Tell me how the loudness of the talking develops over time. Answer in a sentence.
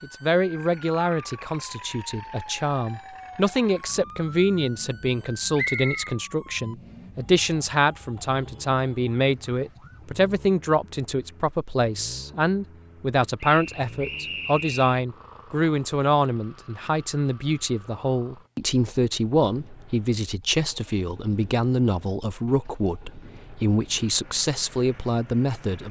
The loudness of the talking stays about the same.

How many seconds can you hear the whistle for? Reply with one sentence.
You can hear the whistle for 2 seconds altogether.